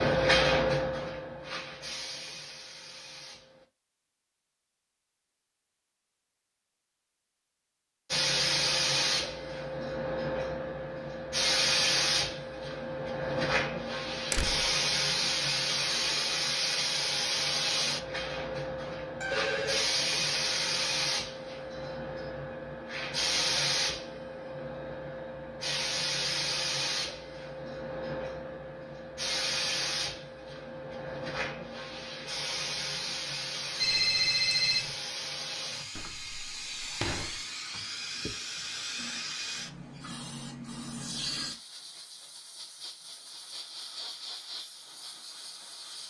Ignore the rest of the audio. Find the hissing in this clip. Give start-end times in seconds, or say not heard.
0.0-3.6, 8.1-46.0.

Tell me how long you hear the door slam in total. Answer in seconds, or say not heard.
2 s.